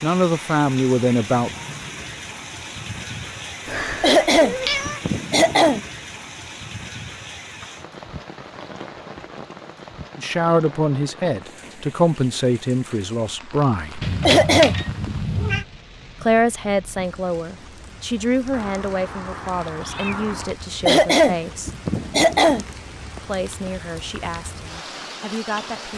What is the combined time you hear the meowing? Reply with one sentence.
You can hear the meowing for 5 seconds altogether.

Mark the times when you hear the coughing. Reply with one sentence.
You can hear the coughing from 4.0 to 5.8 s, from 14.2 to 15.2 s and from 20.9 to 22.6 s.